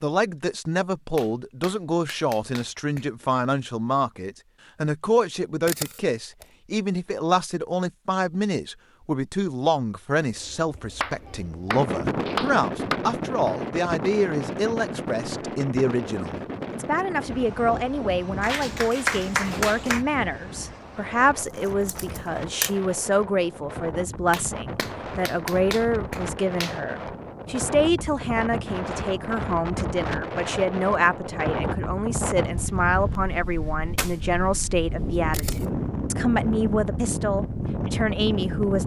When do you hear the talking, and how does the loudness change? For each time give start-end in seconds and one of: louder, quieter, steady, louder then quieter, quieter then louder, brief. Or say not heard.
0.0-38.8 steady.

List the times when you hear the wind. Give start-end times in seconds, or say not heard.
10.2-38.8.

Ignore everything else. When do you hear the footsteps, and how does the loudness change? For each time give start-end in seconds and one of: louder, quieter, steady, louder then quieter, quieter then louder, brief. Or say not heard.
not heard.